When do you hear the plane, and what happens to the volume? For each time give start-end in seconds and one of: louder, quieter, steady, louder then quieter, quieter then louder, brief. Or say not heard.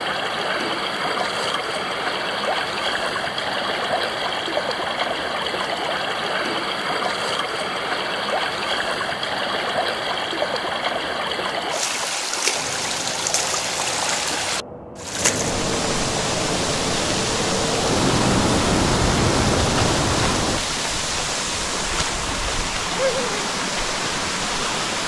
12.5-20.6 louder.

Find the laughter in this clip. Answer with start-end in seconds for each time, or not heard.
22.9-23.5.